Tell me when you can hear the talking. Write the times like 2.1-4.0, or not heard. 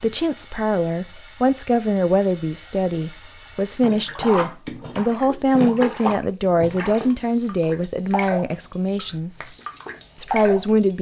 0.0-9.4, 10.2-10.9.